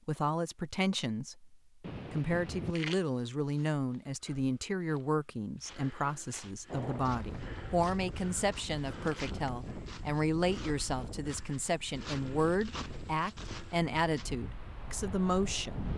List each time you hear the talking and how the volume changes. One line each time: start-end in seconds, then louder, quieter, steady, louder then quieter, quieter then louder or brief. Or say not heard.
0.1-15.9 steady.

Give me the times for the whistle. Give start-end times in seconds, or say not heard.
not heard.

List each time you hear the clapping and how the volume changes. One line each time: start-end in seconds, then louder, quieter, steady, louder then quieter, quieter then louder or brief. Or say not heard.
not heard.